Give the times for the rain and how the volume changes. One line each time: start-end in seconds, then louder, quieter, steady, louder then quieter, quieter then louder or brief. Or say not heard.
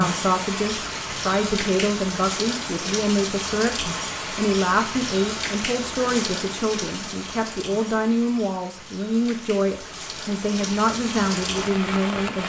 0.0-12.4 quieter then louder.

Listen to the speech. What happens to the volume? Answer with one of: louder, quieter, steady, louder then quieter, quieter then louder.
steady.